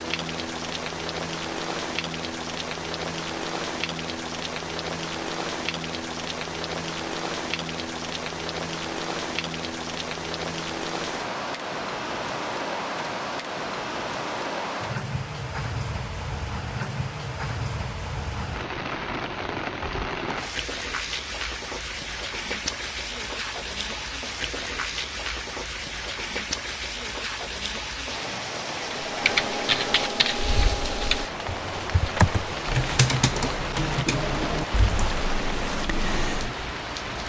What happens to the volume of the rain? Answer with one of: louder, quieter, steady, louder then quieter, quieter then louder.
steady.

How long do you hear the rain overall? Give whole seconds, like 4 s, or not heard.
37 s.